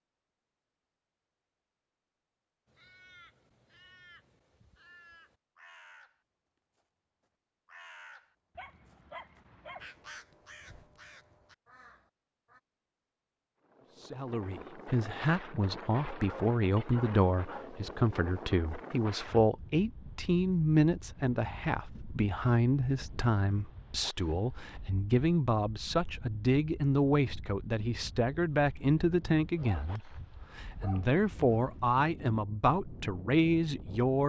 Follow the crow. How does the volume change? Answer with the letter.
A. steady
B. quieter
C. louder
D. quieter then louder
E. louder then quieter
E.